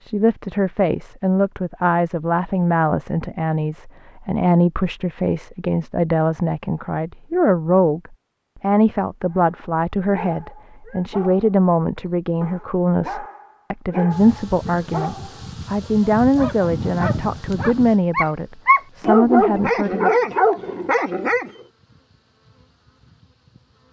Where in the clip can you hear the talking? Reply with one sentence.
You can hear the talking from 0.0 to 20.1 s.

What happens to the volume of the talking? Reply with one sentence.
The volume of the talking stays about the same.